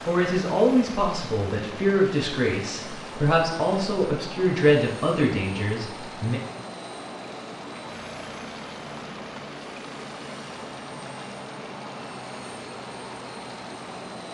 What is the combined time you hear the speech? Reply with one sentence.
The speech can be heard for 6 seconds in total.